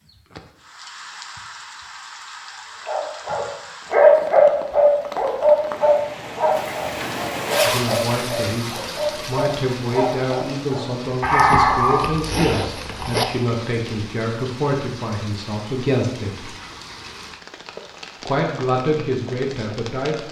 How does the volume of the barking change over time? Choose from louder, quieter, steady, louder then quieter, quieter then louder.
quieter then louder.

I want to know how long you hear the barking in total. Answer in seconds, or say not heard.
9 s.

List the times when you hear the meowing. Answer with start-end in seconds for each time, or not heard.
not heard.